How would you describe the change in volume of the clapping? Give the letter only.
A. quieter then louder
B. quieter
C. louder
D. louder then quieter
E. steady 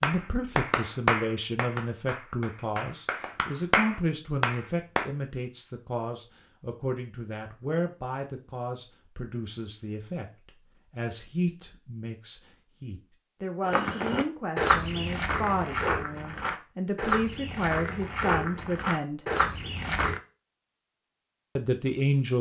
A.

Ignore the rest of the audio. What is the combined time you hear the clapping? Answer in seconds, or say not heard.
5 s.